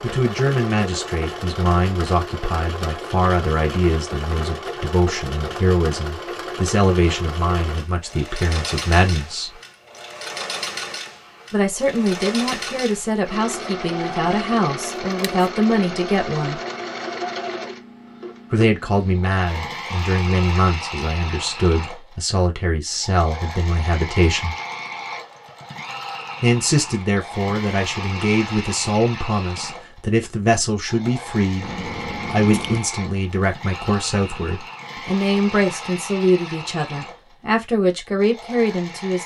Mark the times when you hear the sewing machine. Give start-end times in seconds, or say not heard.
0.0-39.2.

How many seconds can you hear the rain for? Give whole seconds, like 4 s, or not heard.
not heard.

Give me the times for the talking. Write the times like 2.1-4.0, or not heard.
0.0-9.5, 11.5-16.6, 18.5-24.6, 26.4-39.2.